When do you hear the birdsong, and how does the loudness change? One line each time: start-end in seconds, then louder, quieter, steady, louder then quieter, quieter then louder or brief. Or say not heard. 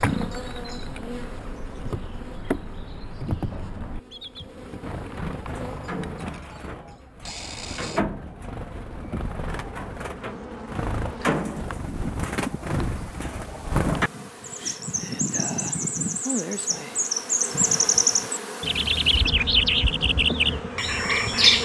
0.0-21.6 louder.